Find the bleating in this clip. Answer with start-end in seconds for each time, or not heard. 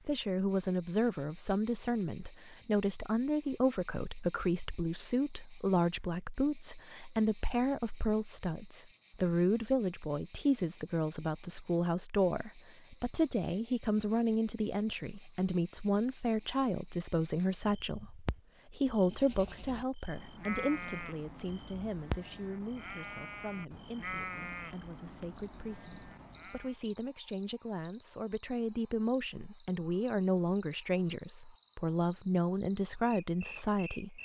19.0-26.8.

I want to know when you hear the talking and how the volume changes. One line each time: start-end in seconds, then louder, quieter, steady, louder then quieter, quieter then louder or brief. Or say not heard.
0.1-34.2 quieter then louder.